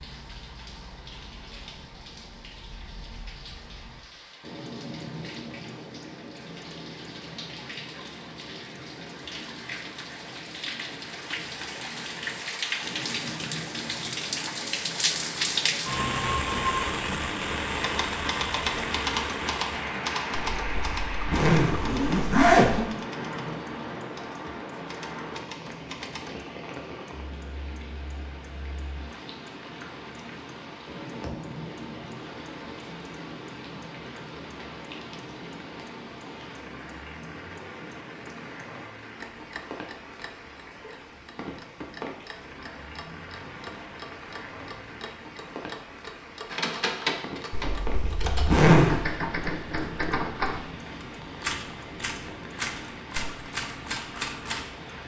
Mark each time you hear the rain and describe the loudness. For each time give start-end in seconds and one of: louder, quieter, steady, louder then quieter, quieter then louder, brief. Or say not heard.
0.0-55.0 louder then quieter.